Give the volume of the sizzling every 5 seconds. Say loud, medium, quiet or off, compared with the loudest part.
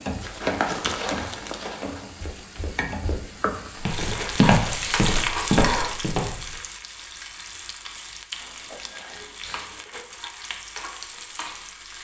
loud, loud, medium.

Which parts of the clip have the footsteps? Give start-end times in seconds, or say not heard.
0.4-6.5.